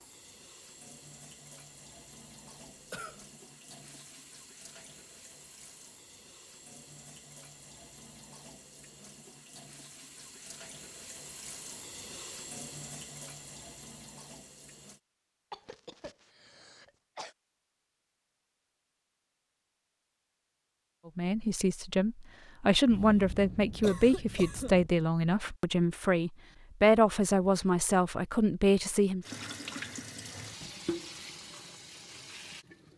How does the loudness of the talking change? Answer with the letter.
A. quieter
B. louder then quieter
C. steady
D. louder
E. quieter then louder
C.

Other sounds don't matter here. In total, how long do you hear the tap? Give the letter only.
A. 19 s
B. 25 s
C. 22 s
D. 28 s
A.